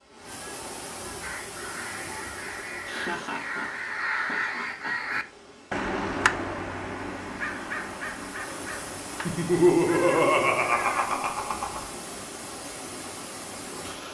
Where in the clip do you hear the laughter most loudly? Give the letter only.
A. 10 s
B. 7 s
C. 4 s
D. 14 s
A.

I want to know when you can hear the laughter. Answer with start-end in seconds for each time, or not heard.
2.4-5.0, 9.2-11.8.